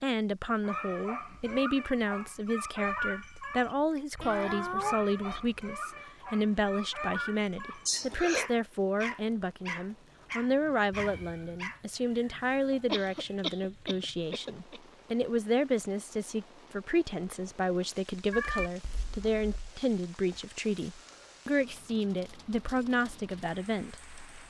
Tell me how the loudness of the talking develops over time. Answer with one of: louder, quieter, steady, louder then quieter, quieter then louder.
steady.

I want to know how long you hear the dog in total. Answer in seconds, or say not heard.
11 s.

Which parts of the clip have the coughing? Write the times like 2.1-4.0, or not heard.
7.8-8.5, 12.8-14.8.